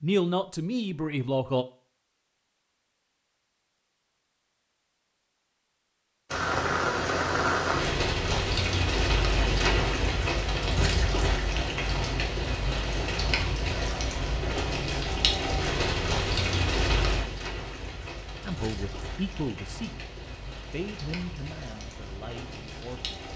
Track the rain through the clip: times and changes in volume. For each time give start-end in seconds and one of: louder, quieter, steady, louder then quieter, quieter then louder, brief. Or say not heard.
6.3-23.3 quieter.